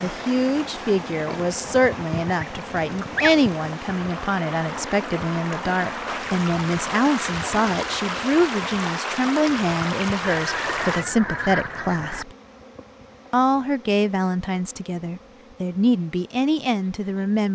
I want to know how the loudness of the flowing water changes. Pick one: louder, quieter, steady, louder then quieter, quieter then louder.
louder.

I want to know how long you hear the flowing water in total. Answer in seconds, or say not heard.
11 s.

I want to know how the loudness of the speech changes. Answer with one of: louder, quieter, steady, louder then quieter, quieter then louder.
steady.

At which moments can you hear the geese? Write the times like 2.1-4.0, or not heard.
1.2-3.5, 10.2-12.2.